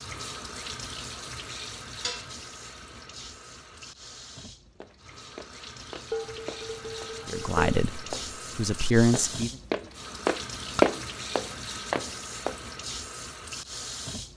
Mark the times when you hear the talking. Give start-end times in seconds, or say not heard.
7.2-9.5.